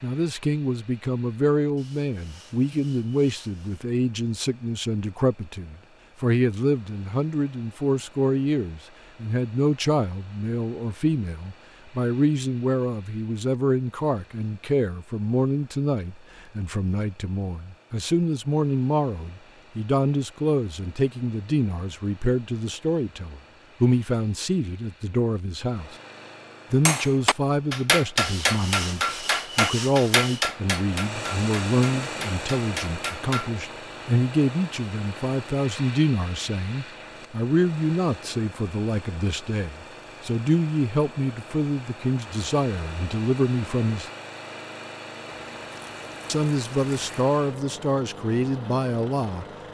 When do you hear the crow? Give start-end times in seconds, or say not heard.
not heard.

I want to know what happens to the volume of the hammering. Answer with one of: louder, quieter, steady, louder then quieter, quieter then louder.
quieter.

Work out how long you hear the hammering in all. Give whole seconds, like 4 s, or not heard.
7 s.